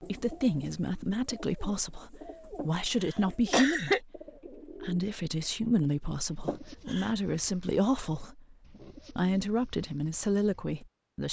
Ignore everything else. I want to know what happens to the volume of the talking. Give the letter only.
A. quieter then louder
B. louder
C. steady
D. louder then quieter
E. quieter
C.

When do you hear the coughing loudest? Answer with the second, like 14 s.
4 s.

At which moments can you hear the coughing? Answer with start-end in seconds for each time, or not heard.
2.5-4.0, 6.5-7.1.